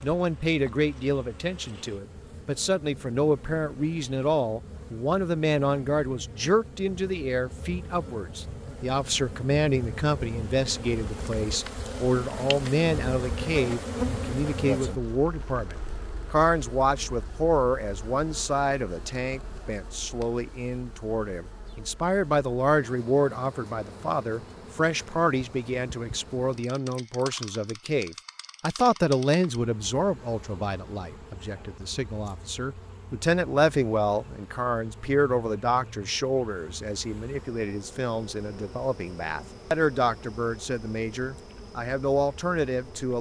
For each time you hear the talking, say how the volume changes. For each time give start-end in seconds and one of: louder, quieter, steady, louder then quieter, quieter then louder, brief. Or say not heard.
0.0-43.1 steady.